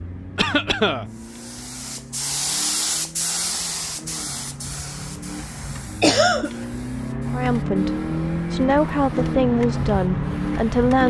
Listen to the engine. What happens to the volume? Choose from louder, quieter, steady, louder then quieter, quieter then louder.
louder.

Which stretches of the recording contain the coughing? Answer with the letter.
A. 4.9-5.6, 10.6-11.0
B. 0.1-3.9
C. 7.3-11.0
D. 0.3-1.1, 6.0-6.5
D.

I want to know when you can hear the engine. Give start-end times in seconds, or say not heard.
0.0-11.0.